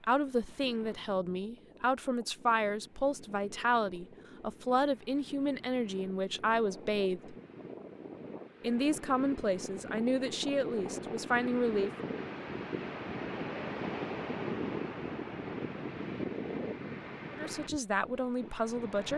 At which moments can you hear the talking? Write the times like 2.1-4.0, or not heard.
0.0-7.3, 8.6-11.9, 17.3-19.1.